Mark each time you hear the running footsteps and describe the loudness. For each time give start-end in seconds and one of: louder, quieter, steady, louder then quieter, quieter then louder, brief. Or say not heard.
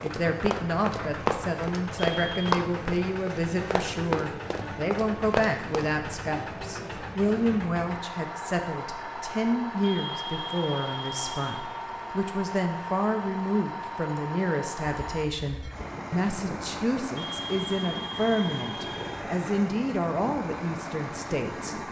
0.0-5.8 steady.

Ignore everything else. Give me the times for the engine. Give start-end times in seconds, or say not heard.
0.0-21.8.